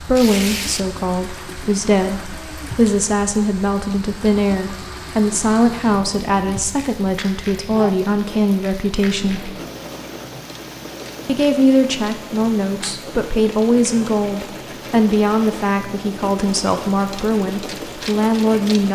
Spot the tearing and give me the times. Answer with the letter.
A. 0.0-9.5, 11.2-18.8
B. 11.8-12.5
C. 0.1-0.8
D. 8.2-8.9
C.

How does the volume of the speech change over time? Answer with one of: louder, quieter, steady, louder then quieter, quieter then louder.
steady.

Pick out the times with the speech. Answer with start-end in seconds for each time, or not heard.
0.0-9.5, 11.2-18.8.